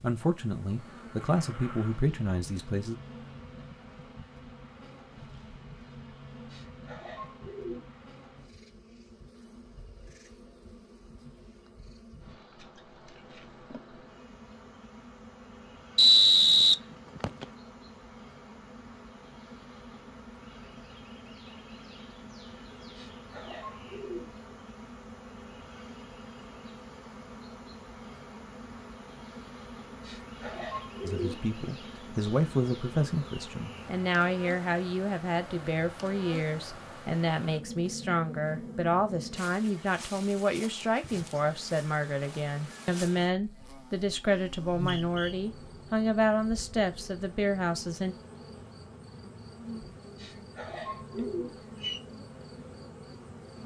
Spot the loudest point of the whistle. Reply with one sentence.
The volume of the whistle peaks at 16 seconds.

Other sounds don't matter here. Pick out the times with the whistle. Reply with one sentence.
The whistle can be heard from 15.9 to 17.4 s and from 44.7 to 45.4 s.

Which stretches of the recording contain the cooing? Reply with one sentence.
The cooing can be heard from 6.5 to 7.8 s, from 22.9 to 24.3 s, from 30.0 to 31.4 s and from 50.1 to 52.0 s.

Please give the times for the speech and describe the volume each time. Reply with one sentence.
The speech can be heard briefly from 0.0 to 3.0 s; and from 31.0 to 48.1 s, at a steady volume.